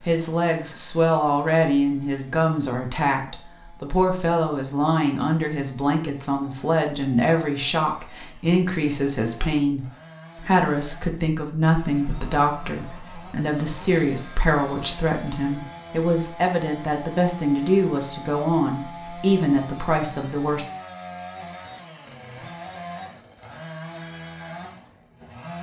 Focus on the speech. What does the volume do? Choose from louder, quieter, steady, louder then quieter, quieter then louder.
steady.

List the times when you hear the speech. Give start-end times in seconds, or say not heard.
0.1-20.6.